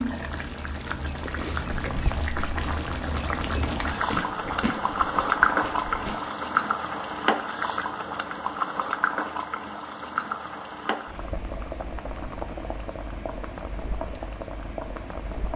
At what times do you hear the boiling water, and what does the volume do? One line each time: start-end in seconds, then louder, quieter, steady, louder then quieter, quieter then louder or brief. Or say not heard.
0.0-15.5 louder then quieter.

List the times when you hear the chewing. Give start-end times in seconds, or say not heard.
1.1-6.2.